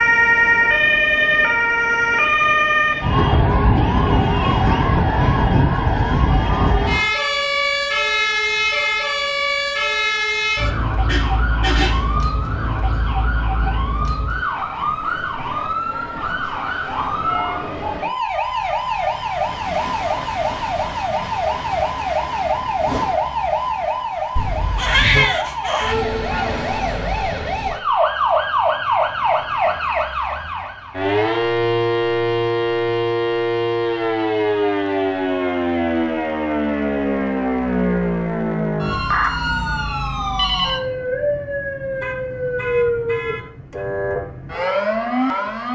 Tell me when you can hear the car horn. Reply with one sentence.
You can hear the car horn from 11.1 to 12.2 s, from 24.4 to 25.3 s and from 42.0 to 43.9 s.